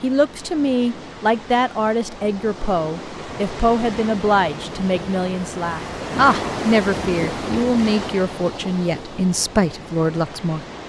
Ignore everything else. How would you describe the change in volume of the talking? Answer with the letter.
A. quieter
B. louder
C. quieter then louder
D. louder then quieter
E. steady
E.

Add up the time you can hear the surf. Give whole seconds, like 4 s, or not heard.
11 s.